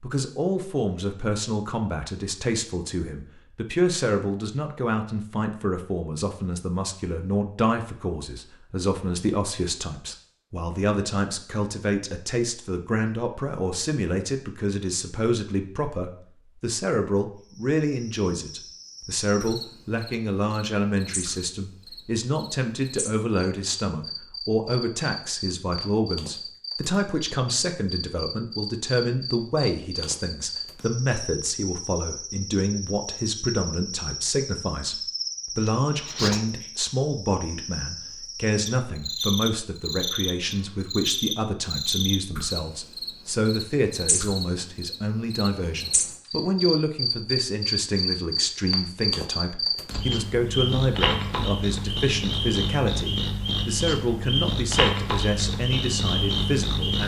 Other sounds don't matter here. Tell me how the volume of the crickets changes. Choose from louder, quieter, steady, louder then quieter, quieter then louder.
louder.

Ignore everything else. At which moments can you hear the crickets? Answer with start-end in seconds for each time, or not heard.
17.4-57.0.